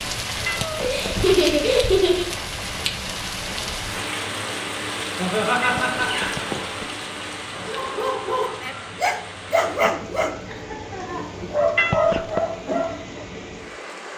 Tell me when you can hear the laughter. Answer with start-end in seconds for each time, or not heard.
0.8-2.2, 5.2-6.7, 10.4-11.3.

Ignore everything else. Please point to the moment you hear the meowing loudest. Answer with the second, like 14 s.
12 s.